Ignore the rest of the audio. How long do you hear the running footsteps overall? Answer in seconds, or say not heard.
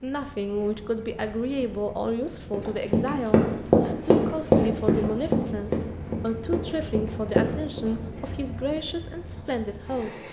5 s.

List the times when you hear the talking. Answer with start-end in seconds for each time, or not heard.
0.0-10.2.